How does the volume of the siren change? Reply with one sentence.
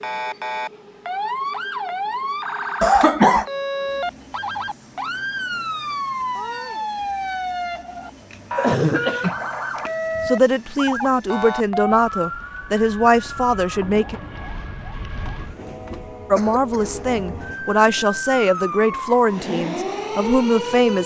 The loudness of the siren goes down, then up.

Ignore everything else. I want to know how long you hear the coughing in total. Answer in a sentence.
You can hear the coughing for 4 seconds altogether.